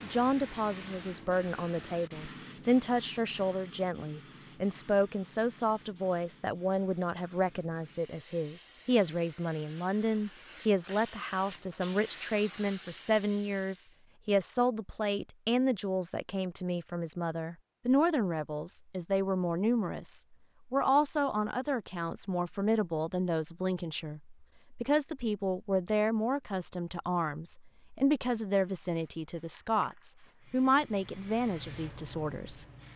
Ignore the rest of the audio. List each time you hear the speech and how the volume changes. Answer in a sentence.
The speech can be heard from 0.0 to 32.6 s, at a steady volume.